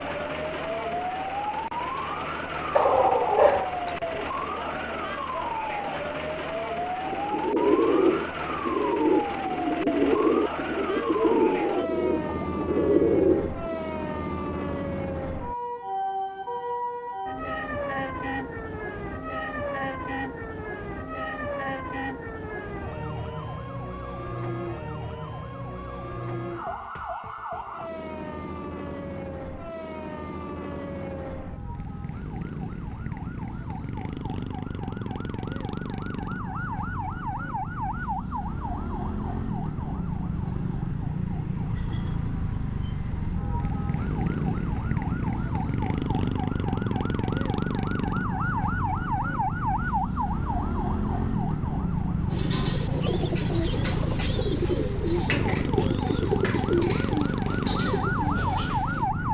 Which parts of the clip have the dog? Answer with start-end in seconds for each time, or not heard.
2.7-4.0.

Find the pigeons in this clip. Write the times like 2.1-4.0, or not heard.
7.0-13.8, 52.3-59.0.